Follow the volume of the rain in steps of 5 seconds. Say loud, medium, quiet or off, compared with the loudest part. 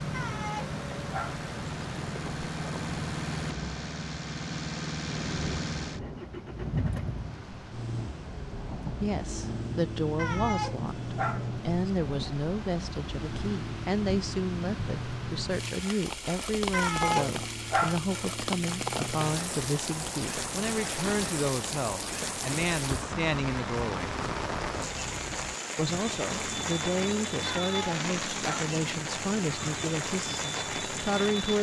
medium, medium, medium, loud, loud, loud, loud.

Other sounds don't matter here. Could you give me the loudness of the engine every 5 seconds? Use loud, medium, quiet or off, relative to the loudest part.
loud, loud, loud, medium, medium, medium, medium.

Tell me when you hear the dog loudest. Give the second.
17 s.